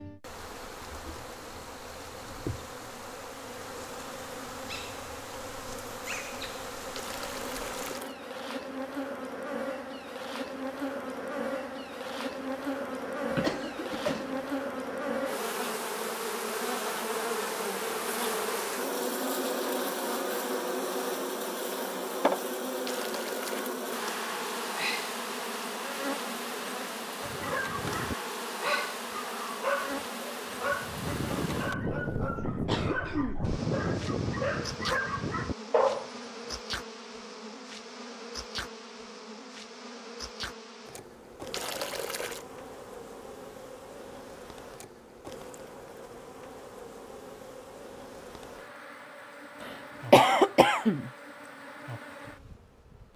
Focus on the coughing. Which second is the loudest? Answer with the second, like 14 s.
50 s.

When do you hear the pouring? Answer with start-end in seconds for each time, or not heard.
7.0-8.2, 22.9-23.8, 41.5-42.5.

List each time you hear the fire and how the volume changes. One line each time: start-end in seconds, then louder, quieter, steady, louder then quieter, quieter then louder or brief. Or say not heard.
not heard.